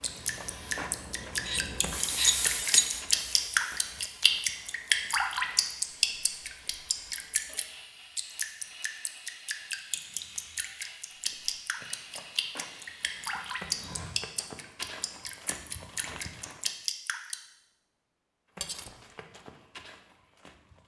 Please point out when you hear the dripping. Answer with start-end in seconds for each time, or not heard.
0.0-17.4.